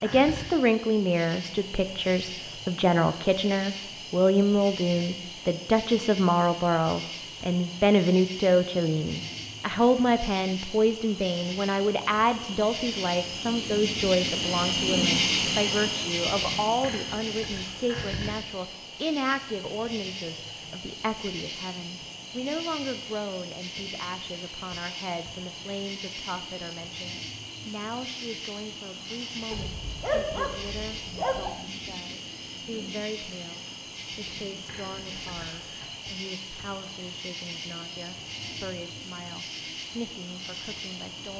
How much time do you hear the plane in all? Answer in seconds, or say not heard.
not heard.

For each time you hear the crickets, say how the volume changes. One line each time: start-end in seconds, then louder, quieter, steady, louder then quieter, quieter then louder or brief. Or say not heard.
0.0-41.3 louder then quieter.